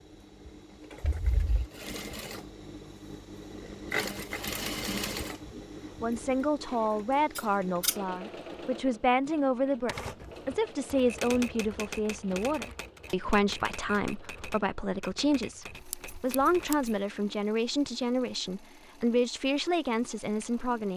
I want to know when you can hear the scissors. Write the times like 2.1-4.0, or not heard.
1.0-1.7, 7.3-8.0, 15.9-16.9.